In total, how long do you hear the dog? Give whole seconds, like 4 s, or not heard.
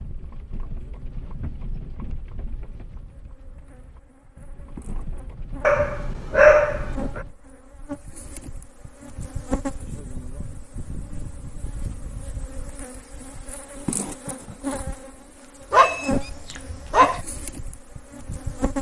3 s.